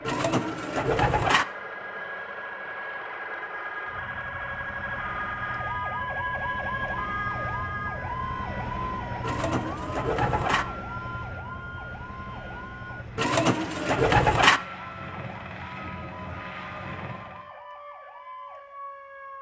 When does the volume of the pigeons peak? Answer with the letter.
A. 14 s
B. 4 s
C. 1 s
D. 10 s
A.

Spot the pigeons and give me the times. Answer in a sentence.
The pigeons can be heard from 0.1 to 1.4 s, from 9.2 to 10.7 s and from 13.2 to 14.6 s.